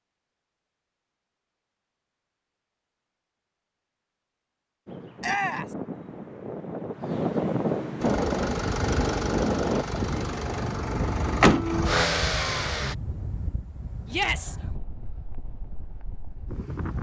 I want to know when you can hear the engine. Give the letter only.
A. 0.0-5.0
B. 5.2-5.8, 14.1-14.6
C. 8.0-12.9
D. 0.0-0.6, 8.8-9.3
C.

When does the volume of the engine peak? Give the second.
12 s.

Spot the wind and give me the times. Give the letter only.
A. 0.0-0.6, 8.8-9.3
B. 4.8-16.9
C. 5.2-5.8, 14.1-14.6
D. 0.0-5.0
B.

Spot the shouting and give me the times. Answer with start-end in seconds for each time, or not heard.
5.2-5.8, 14.1-14.6.